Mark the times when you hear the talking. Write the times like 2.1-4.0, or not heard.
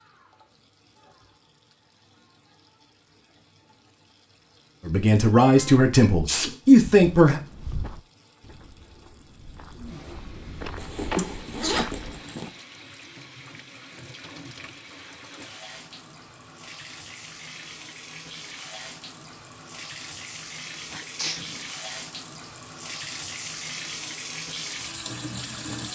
4.8-7.4.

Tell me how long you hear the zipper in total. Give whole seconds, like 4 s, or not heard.
2 s.